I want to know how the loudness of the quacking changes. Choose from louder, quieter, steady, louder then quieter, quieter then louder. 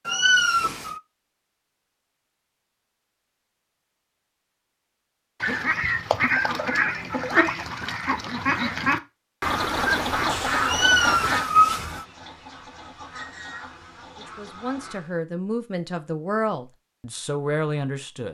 quieter.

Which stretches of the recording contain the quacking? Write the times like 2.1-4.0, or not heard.
5.4-15.2.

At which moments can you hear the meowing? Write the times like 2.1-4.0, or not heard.
0.1-1.0, 10.7-12.1.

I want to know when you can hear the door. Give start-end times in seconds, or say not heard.
not heard.